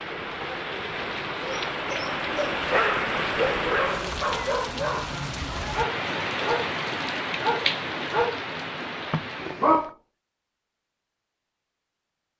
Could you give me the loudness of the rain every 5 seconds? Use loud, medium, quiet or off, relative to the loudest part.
loud, loud, off.